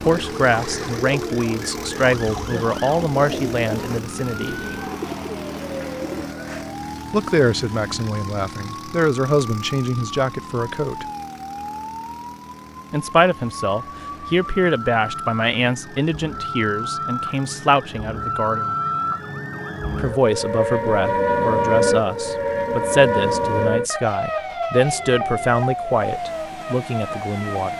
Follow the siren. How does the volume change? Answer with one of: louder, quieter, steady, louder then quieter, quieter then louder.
louder.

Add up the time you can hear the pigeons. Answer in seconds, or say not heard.
6 s.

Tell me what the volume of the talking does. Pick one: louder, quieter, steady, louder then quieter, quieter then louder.
steady.